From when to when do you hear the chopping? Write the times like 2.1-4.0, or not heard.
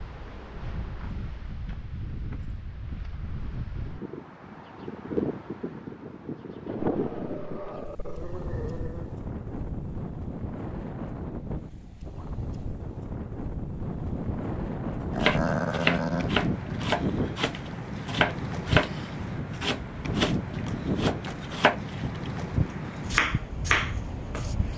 15.2-22.3, 23.1-24.6.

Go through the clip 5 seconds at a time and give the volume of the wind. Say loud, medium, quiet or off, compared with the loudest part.
medium, loud, loud, loud, loud.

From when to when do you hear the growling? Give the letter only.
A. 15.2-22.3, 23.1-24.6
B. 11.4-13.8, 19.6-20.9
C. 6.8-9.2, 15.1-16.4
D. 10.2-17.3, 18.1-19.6
C.